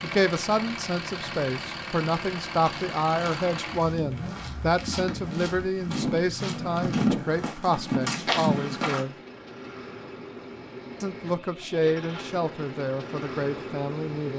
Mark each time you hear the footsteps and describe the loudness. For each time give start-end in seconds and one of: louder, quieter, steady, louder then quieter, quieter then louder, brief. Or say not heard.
2.6-9.0 louder.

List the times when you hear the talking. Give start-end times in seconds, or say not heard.
0.0-9.2, 11.0-14.3.